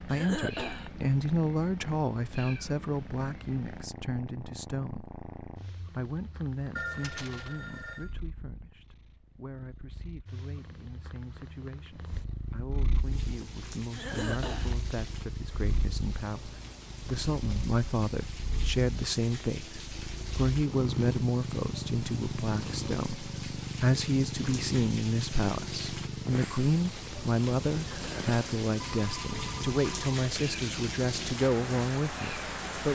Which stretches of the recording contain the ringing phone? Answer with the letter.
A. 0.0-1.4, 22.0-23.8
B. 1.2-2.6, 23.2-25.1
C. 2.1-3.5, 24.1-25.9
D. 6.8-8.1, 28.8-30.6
D.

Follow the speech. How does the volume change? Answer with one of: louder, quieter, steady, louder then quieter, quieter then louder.
quieter then louder.